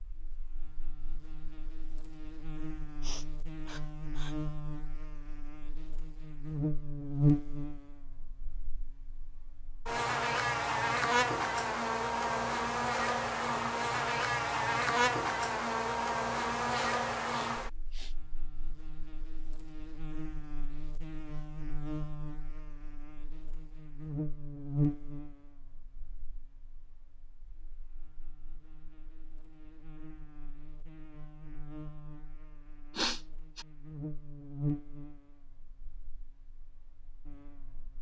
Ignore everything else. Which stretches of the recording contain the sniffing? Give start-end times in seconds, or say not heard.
3.0-4.3, 16.6-18.1, 33.0-33.6.